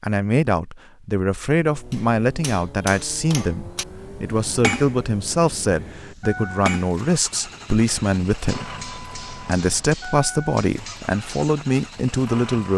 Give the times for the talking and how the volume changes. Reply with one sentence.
The talking can be heard from 0.0 to 12.7 s, at a steady volume.